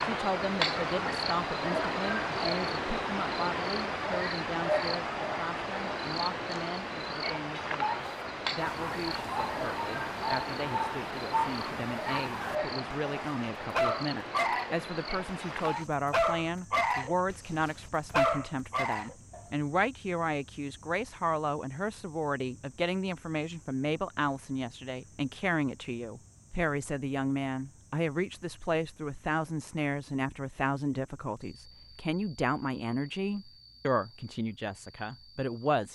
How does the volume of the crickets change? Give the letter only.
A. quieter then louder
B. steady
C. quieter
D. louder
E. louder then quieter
C.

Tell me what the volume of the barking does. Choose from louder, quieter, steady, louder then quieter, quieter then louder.
louder.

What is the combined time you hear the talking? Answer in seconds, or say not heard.
36 s.